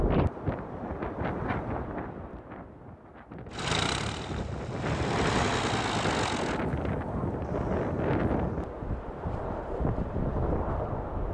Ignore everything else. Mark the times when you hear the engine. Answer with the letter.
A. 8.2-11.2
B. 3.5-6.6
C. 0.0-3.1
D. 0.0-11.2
B.